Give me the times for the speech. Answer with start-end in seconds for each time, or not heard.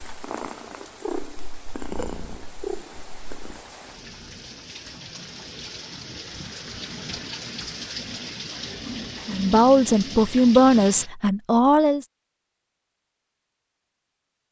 9.3-12.1.